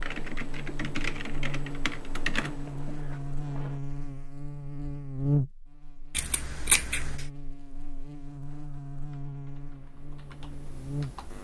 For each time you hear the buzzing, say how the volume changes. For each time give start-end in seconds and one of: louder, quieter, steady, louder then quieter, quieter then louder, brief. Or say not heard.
0.0-11.3 louder then quieter.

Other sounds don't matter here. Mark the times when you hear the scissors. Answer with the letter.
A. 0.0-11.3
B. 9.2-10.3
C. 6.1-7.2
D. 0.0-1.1
C.